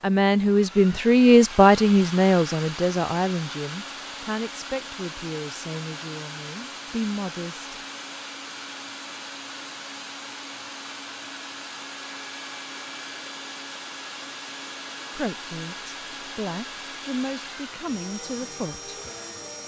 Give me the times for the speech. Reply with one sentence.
You can hear the speech from 0.0 to 7.8 s and from 15.2 to 18.9 s.